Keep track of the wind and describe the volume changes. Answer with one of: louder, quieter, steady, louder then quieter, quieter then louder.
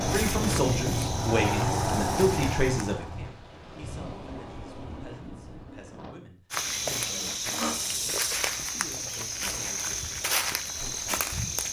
quieter.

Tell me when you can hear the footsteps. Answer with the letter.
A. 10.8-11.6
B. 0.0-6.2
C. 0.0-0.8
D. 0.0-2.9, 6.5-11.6
D.